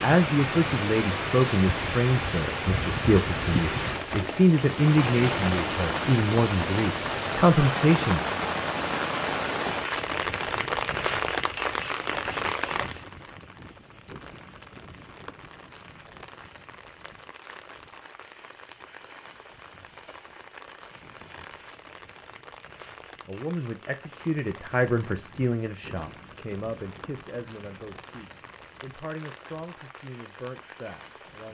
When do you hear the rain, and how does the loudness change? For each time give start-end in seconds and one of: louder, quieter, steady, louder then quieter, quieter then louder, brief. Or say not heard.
0.0-31.4 quieter.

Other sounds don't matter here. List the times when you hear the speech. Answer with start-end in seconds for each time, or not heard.
0.0-8.2, 23.1-31.4.